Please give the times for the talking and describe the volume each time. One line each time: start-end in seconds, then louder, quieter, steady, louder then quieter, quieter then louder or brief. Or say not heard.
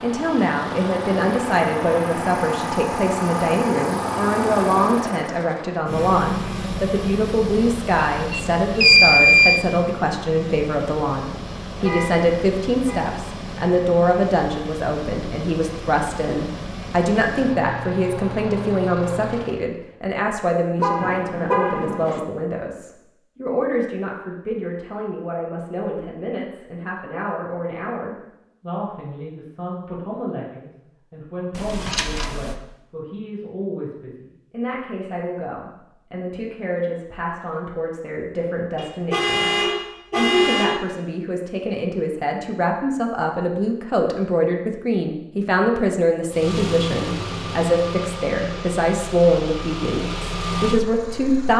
0.0-51.5 quieter then louder.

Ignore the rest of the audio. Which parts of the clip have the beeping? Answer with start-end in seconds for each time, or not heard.
8.0-9.6, 31.5-32.5.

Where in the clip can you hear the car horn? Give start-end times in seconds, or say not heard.
11.8-13.0, 20.8-22.2, 38.8-40.8.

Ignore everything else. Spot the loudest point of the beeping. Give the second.
9 s.